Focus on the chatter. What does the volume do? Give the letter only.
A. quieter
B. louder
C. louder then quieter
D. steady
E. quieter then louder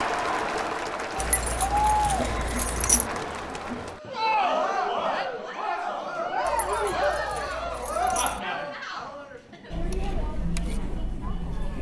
A.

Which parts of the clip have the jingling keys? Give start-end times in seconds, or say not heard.
1.1-3.0, 6.5-8.4.